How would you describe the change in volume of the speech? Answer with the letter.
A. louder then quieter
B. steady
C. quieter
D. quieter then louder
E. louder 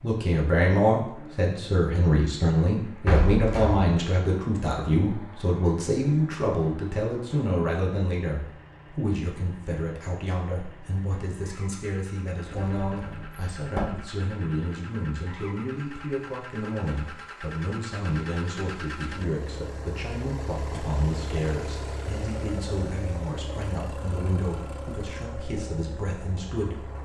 C.